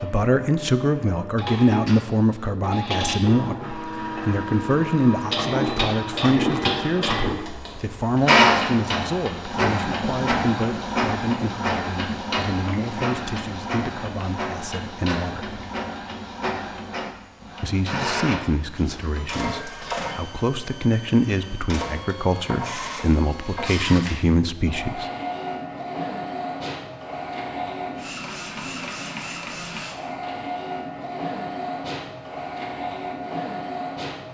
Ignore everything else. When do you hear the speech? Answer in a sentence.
You can hear the speech from 0.0 to 15.6 s and from 17.6 to 25.1 s.